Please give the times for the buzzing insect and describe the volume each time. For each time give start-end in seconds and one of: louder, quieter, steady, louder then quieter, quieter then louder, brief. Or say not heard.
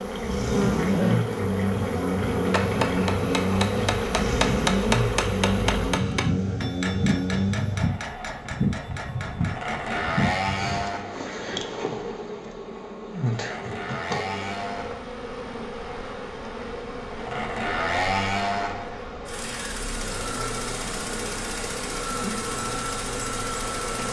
0.0-24.0 quieter.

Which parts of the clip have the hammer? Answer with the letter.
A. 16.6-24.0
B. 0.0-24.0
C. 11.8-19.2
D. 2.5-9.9
D.